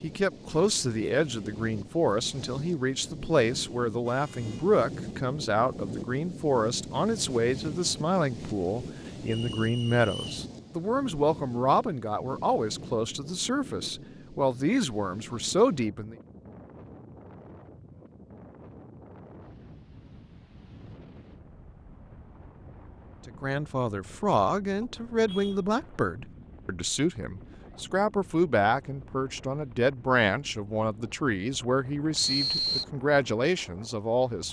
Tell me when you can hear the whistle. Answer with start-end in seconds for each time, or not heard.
9.2-10.4, 32.1-32.9.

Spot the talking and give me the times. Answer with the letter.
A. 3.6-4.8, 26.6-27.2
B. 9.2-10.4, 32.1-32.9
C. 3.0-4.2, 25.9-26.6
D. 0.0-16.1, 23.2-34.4
D.